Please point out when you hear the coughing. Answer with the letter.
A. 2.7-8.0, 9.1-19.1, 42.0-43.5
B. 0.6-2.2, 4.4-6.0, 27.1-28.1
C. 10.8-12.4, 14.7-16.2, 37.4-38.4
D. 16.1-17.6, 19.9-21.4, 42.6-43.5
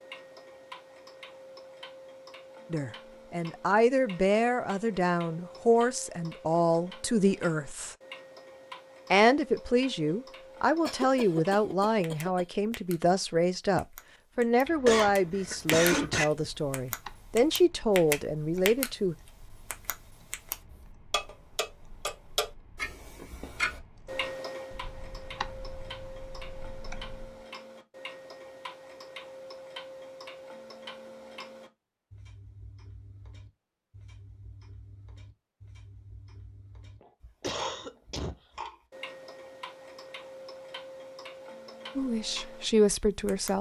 C.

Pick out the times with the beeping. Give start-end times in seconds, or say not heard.
not heard.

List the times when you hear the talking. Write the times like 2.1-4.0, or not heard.
2.7-8.0, 9.1-19.1, 42.0-43.5.